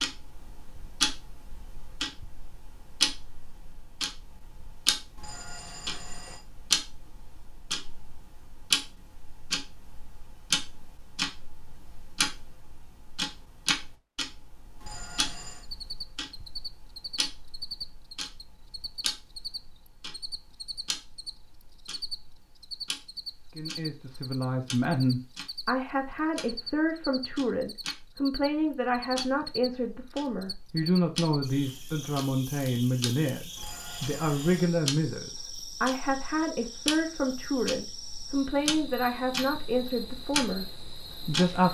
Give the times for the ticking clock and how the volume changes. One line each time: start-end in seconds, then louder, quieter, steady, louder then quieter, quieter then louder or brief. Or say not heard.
0.0-41.6 quieter then louder.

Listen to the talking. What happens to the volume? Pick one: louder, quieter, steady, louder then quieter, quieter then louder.
steady.